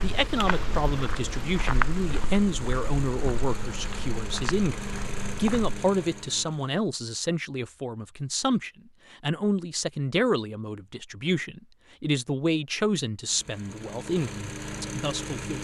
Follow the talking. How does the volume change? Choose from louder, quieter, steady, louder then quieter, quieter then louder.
steady.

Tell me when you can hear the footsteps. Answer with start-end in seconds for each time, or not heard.
0.0-5.8.